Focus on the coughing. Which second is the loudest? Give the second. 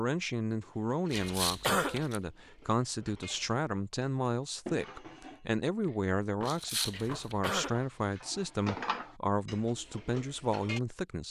2 s.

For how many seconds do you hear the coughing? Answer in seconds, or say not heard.
2 s.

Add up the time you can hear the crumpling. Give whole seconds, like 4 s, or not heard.
2 s.